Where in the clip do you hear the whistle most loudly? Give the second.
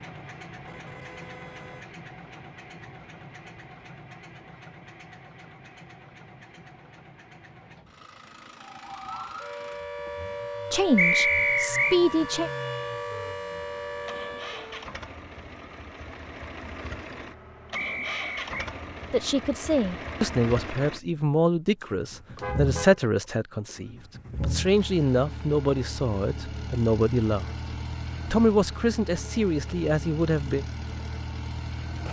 11 s.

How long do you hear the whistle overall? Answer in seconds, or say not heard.
2 s.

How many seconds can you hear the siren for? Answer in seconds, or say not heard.
6 s.